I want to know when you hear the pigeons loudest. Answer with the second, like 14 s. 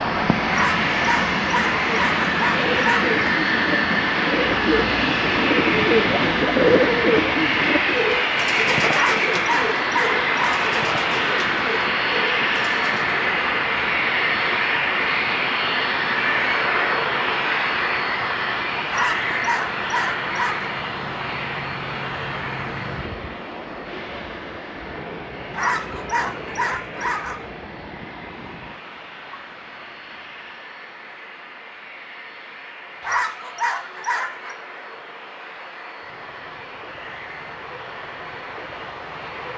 7 s.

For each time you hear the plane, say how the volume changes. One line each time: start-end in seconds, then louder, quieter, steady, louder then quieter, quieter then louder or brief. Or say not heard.
0.0-39.5 quieter.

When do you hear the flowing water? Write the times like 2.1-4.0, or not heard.
0.0-39.5.